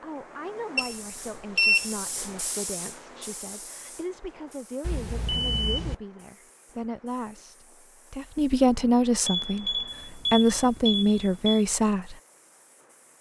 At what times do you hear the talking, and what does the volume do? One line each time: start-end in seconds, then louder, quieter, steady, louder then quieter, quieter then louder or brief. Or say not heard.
0.0-12.2 louder.